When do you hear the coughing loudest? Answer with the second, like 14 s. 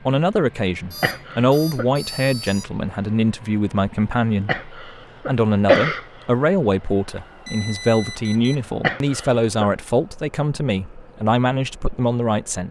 6 s.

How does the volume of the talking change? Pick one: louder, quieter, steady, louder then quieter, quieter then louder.
steady.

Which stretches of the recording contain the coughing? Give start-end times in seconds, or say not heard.
1.0-1.9, 4.5-6.5, 8.8-9.7.